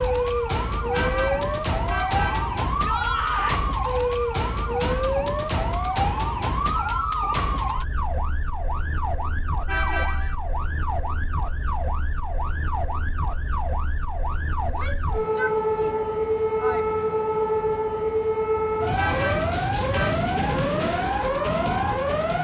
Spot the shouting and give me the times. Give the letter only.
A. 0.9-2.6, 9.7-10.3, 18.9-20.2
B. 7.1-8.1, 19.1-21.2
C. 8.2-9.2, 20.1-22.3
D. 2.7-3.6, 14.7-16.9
D.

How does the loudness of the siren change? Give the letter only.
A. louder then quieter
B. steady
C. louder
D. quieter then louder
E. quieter
D.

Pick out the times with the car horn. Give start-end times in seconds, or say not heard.
0.9-2.6, 9.7-10.3, 18.9-20.2.